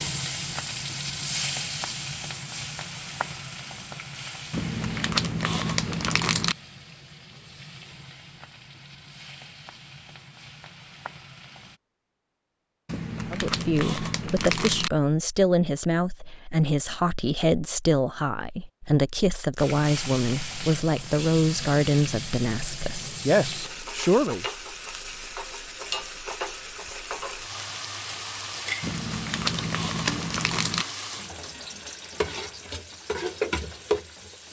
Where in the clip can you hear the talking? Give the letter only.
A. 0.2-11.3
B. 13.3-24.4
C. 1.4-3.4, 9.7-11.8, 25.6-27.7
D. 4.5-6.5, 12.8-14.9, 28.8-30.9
B.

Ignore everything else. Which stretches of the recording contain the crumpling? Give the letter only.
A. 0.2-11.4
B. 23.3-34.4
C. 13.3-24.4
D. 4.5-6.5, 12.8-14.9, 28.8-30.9
D.